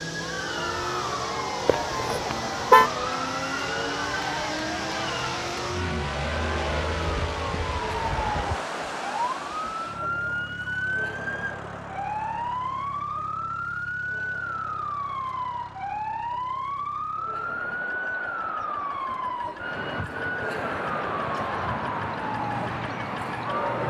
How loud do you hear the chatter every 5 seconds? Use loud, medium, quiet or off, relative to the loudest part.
loud, loud, medium, medium, loud.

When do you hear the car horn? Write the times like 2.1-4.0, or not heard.
1.6-2.9.